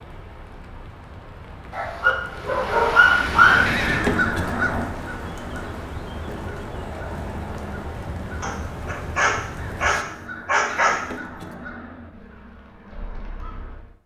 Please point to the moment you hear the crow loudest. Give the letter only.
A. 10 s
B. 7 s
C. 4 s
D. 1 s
C.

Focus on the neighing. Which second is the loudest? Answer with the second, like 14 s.
4 s.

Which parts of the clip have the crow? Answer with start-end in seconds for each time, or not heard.
3.1-13.9.